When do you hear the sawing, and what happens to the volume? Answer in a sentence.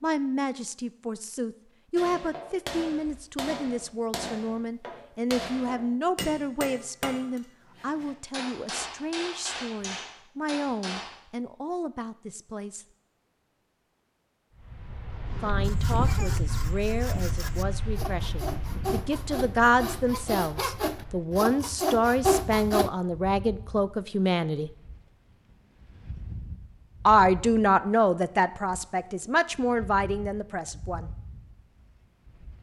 You can hear the sawing from 15.6 to 22.9 s, getting louder.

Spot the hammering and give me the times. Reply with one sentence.
You can hear the hammering from 1.9 to 11.2 s.